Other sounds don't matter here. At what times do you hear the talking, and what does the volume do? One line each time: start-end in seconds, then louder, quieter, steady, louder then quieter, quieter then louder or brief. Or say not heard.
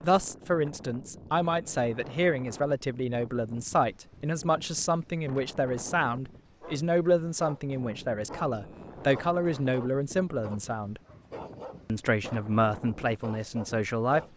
0.0-11.0 steady
11.8-14.2 brief.